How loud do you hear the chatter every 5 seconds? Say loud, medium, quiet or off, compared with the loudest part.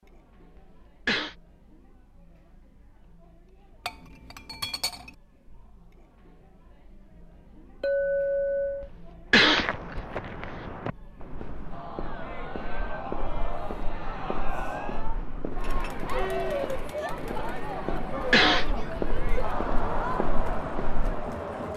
quiet, quiet, medium, loud, loud.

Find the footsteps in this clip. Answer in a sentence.
The footsteps can be heard from 9.3 to 21.4 s.